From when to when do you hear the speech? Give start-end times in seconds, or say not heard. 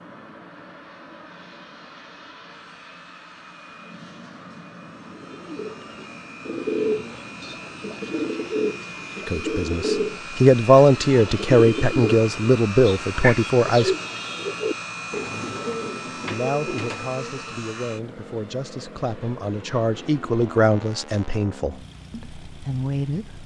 9.2-13.9, 16.2-23.4.